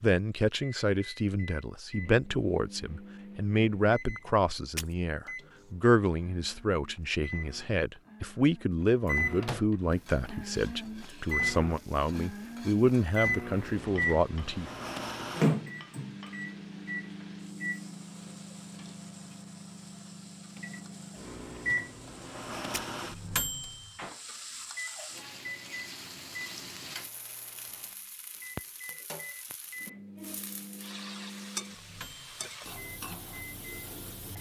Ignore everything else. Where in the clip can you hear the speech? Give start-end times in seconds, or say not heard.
0.0-14.7.